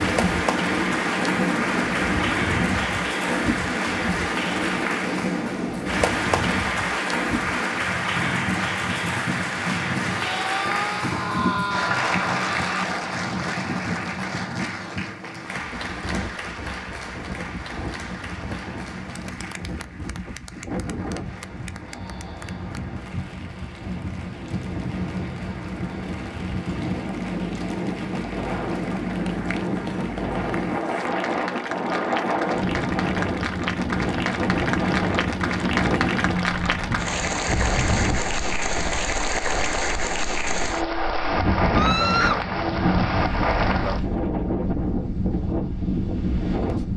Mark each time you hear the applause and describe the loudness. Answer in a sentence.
The applause can be heard from 0.0 to 44.0 s, getting quieter then louder.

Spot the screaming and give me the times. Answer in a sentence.
You can hear the screaming from 10.2 to 12.9 s and from 41.7 to 42.4 s.